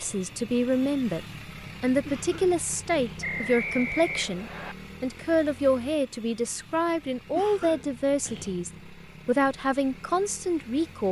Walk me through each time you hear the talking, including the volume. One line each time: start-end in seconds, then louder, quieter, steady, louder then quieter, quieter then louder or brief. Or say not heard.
0.0-11.0 steady.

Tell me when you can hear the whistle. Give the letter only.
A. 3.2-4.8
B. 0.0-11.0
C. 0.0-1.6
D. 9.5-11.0
A.